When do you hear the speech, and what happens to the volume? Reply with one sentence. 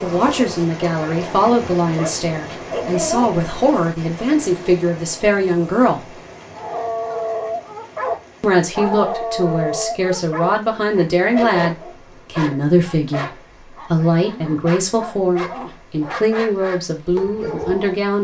You can hear the speech from 0.0 to 6.2 s, at a steady volume; and from 8.4 to 18.1 s, at a steady volume.